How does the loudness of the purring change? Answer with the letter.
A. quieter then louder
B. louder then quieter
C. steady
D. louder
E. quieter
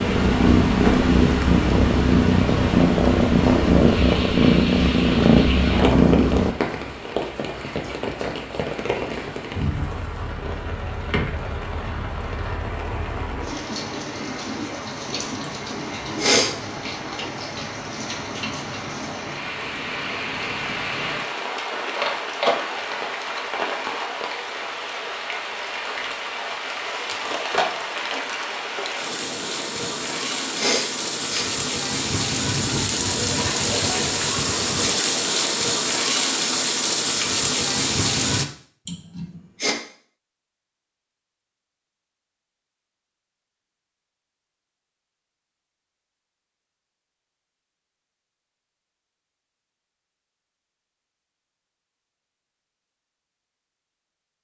C.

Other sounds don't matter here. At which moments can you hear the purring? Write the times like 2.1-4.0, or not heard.
0.0-6.5.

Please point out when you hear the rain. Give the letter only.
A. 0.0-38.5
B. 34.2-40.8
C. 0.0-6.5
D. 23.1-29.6
A.